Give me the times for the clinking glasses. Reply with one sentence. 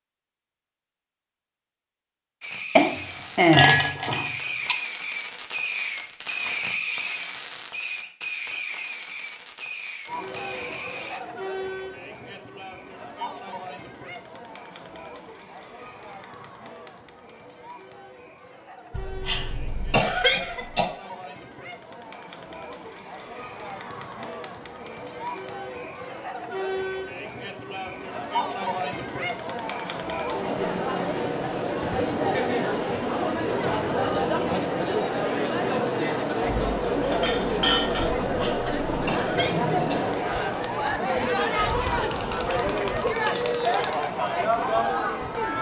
You can hear the clinking glasses from 2.8 to 4.8 s and from 36.4 to 38.1 s.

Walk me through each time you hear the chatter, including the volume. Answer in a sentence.
The chatter can be heard from 10.1 to 45.5 s, getting louder.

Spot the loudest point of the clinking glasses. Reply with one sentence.
The volume of the clinking glasses peaks at 4 seconds.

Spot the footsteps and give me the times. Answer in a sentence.
You can't hear the footsteps here.